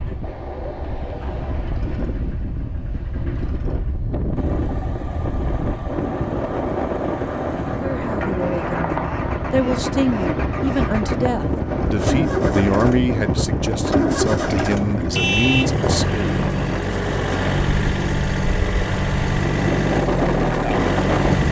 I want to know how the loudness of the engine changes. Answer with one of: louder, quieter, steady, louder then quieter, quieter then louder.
louder.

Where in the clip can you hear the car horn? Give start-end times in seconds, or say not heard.
15.1-15.8.